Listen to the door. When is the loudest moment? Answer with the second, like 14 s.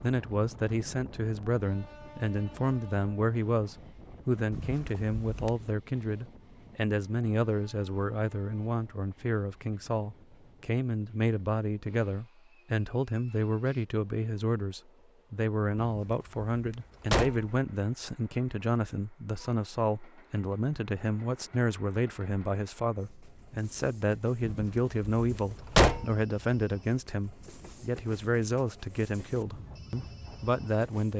26 s.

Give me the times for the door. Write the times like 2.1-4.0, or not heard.
4.5-5.7, 15.8-17.5, 24.4-26.1.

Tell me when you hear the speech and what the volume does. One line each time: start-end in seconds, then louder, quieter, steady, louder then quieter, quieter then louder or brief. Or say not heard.
0.0-31.1 steady.